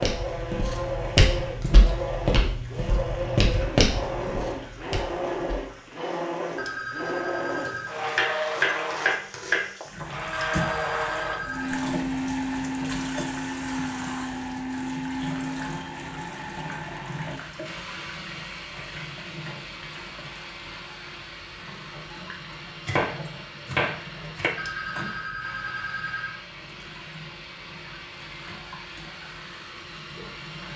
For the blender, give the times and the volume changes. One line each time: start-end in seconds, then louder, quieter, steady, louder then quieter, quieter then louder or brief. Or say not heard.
0.0-30.7 quieter.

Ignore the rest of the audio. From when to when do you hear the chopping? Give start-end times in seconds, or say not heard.
7.7-9.7, 22.9-24.5.